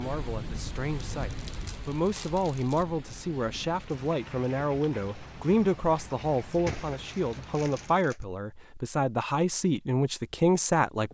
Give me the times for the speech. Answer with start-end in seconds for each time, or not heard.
0.0-11.0.